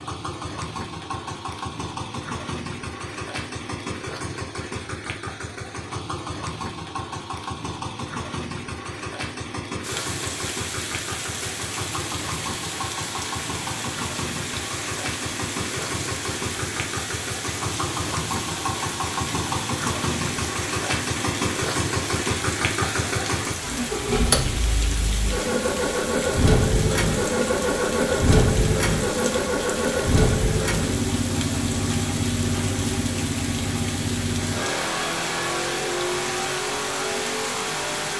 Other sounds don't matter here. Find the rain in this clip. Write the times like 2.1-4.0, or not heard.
9.8-38.1.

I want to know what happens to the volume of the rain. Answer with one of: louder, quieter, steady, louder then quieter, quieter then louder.
steady.